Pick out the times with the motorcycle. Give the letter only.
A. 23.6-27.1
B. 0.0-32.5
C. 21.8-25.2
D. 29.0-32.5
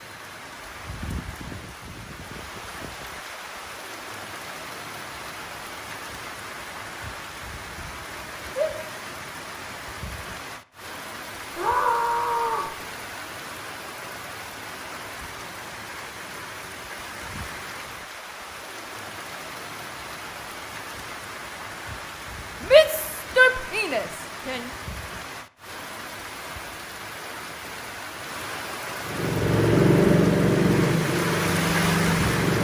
D.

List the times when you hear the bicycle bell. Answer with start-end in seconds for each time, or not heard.
not heard.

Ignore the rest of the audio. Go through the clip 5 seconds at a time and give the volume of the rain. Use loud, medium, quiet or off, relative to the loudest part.
medium, medium, medium, medium, medium, medium, loud.